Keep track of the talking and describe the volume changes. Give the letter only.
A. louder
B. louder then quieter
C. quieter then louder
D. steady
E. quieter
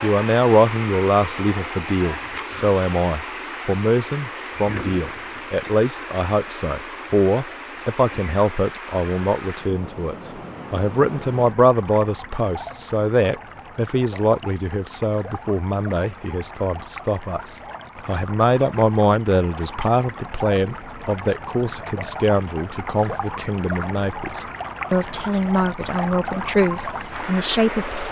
D.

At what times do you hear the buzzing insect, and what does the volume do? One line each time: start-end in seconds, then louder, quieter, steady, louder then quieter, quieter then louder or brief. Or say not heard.
not heard.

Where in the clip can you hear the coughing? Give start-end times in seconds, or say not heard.
not heard.